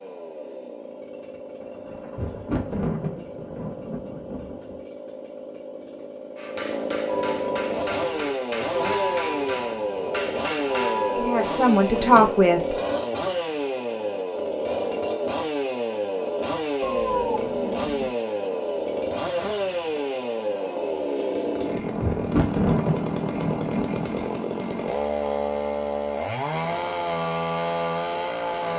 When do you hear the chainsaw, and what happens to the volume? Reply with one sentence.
You can hear the chainsaw from 0.0 to 28.7 s, getting louder.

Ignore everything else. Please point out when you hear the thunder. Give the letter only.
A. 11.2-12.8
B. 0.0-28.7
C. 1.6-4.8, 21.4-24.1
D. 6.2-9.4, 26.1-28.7
C.